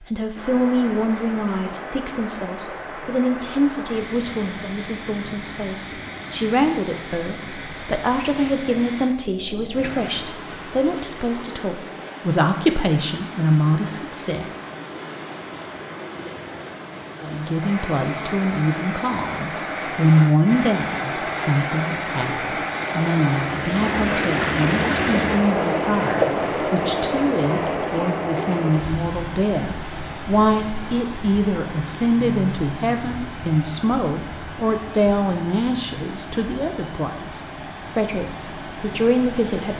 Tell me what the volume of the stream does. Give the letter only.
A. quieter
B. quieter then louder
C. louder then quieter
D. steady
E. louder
C.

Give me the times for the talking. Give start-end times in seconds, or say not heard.
0.0-14.4, 17.2-39.7.